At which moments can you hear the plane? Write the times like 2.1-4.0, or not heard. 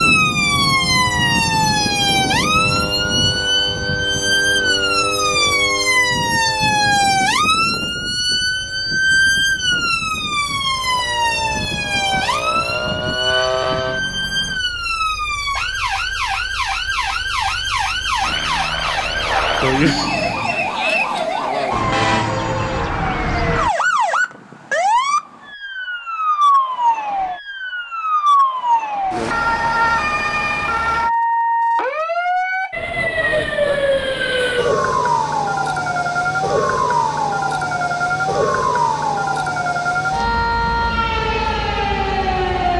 0.0-14.6, 18.1-20.4.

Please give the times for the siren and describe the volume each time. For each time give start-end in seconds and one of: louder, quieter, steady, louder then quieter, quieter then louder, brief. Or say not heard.
0.0-42.7 steady.